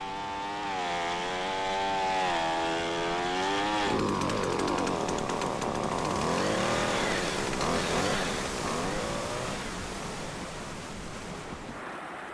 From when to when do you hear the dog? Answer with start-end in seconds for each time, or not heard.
not heard.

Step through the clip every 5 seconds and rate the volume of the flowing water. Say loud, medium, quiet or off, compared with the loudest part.
medium, loud, loud.